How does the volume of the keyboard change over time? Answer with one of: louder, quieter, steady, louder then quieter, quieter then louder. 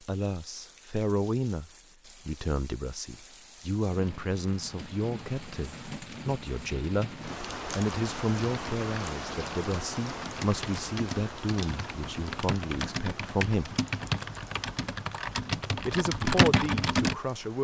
louder.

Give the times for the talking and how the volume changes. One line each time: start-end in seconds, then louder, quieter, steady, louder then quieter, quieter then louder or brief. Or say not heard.
0.1-13.8 steady
15.8-17.5 brief.